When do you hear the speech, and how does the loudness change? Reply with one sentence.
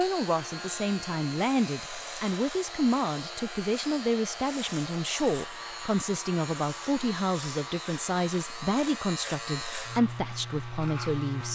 The speech can be heard from 0.0 to 11.4 s, at a steady volume.